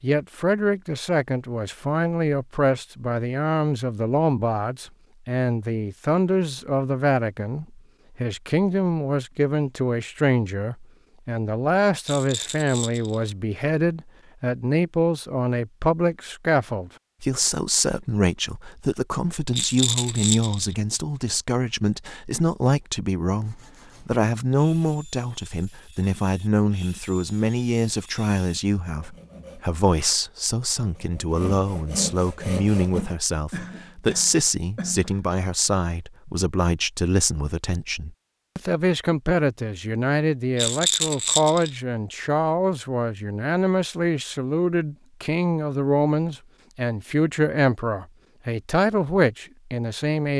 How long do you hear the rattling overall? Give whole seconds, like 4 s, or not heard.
4 s.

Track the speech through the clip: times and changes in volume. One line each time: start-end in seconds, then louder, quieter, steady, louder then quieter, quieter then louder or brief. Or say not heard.
0.0-50.3 steady.